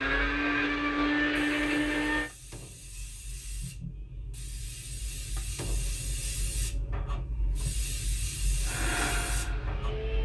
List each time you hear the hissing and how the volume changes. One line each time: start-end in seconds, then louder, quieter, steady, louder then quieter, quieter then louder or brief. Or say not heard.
0.0-10.2 louder.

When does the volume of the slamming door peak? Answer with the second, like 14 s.
6 s.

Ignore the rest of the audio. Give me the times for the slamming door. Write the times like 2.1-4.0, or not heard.
2.2-2.9, 5.3-6.0.